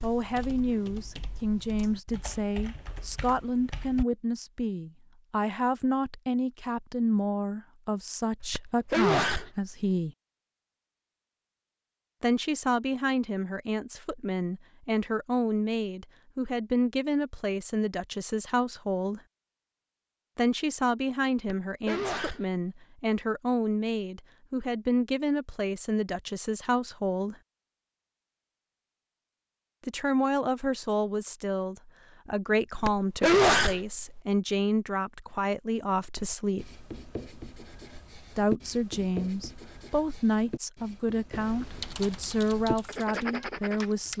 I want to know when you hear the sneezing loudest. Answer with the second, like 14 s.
33 s.